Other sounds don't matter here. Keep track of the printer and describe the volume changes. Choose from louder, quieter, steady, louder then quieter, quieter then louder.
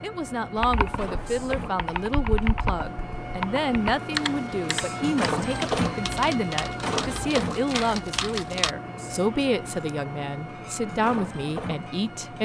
louder then quieter.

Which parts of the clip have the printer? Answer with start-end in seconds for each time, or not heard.
0.0-12.4.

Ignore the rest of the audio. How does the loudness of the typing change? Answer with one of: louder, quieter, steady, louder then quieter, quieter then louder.
steady.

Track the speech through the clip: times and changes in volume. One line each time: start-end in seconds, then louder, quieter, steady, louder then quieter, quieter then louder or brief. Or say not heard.
0.0-12.4 steady.